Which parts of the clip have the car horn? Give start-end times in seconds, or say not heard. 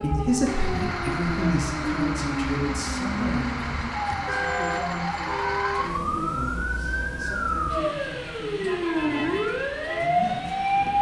4.0-5.9.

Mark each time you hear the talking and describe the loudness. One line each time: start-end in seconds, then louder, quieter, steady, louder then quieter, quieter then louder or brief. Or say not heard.
0.0-10.8 quieter.